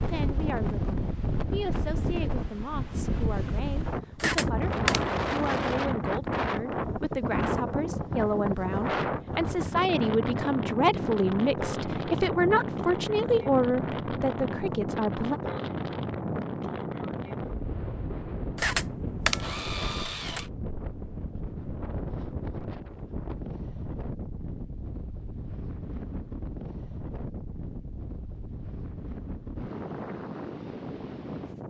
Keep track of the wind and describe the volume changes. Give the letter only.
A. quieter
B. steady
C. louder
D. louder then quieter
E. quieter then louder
A.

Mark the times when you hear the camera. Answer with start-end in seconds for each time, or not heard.
4.2-5.0, 18.6-20.4.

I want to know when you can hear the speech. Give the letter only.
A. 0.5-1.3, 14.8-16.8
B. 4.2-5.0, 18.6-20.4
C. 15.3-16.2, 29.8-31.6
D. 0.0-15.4
D.